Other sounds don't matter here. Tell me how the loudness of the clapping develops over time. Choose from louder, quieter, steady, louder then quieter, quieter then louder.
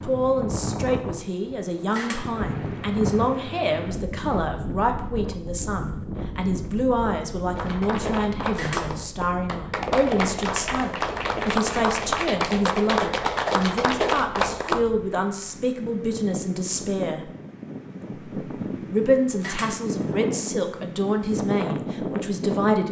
louder.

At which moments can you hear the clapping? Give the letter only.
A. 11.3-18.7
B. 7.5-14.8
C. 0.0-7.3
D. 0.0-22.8
B.